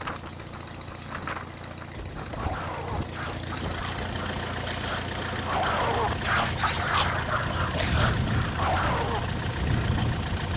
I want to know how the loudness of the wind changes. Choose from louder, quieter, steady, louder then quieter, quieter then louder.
louder.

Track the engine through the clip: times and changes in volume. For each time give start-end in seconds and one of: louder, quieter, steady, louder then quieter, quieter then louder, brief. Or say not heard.
0.0-10.5 louder.